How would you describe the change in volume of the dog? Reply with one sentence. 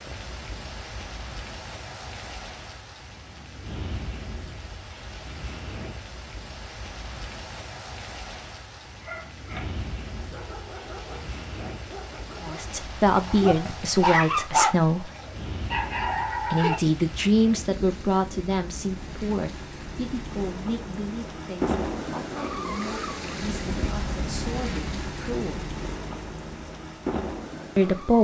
The volume of the dog goes up, then down.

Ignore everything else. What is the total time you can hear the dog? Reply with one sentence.
The dog can be heard for 8 seconds in total.